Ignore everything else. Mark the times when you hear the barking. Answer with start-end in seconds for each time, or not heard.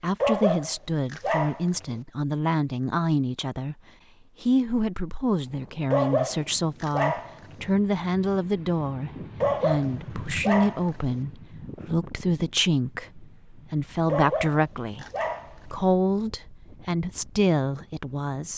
0.2-2.0, 5.9-7.7, 9.4-11.2, 14.1-15.9.